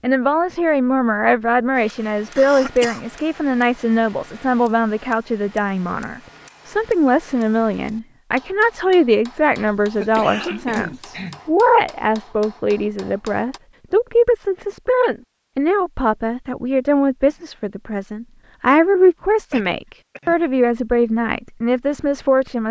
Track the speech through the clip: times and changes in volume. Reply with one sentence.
You can hear the speech from 0.0 to 22.6 s, at a steady volume.